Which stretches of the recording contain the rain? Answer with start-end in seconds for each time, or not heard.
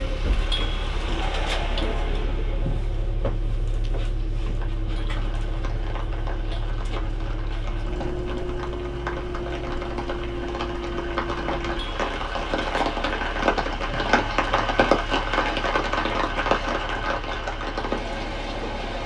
4.5-19.0.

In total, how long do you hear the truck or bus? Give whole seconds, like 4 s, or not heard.
19 s.